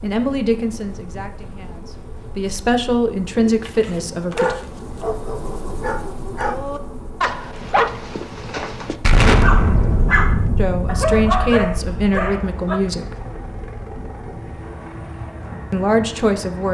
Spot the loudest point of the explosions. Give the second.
9 s.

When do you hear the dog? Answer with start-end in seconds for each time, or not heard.
3.4-12.8.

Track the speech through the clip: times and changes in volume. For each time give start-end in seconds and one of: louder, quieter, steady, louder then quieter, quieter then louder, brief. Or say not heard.
0.0-4.5 quieter then louder
10.6-13.2 brief
15.7-16.7 brief.